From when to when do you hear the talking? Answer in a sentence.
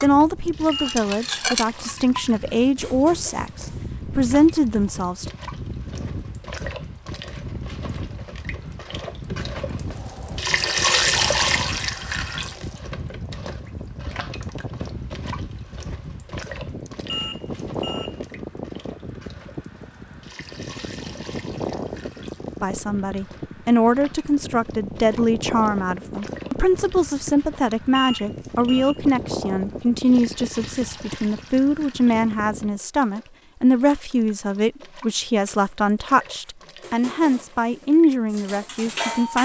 You can hear the talking from 0.0 to 5.2 s and from 22.6 to 39.4 s.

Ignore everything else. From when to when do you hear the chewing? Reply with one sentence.
The chewing can't be heard in this clip.